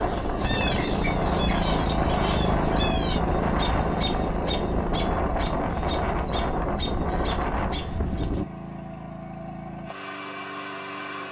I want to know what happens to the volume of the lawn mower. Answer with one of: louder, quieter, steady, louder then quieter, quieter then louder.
quieter.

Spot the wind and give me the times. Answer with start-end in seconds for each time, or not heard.
0.0-8.4.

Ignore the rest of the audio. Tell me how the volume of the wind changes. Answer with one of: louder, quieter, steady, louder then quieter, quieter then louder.
steady.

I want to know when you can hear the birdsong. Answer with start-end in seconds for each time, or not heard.
0.0-8.3.